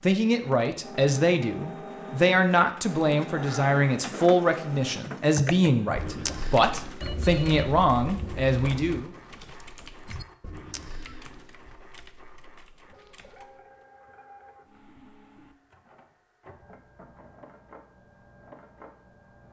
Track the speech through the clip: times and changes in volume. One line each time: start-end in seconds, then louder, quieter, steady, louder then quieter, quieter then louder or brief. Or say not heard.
0.0-9.1 steady.